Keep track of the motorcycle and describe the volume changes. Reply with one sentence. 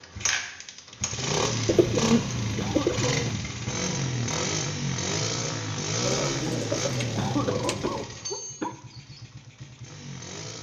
The volume of the motorcycle goes down.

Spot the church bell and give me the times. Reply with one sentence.
The church bell can't be heard in this clip.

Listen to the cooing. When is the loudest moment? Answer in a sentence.
The loudest moment of the cooing is at 2 seconds.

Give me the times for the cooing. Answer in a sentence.
You can hear the cooing from 1.6 to 3.4 s and from 6.0 to 8.1 s.